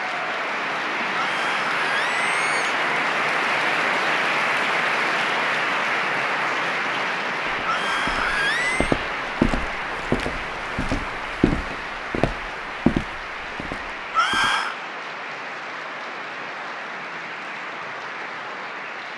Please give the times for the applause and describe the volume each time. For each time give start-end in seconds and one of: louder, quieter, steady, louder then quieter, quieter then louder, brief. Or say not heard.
0.0-19.1 quieter.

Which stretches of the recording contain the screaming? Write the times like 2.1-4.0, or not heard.
1.2-2.7, 7.7-8.9, 14.1-14.8.